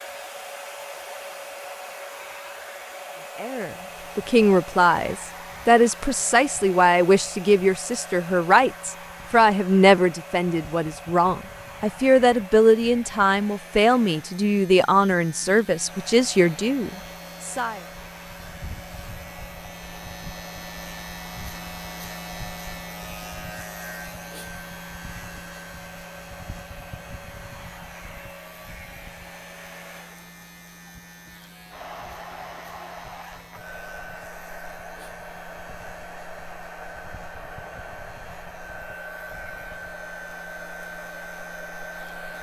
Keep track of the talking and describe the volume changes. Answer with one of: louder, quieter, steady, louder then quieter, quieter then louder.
steady.